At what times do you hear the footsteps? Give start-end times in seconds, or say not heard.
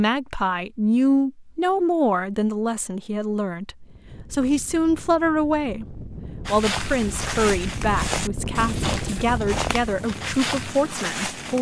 6.5-11.5.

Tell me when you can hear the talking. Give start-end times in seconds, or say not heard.
0.0-11.5.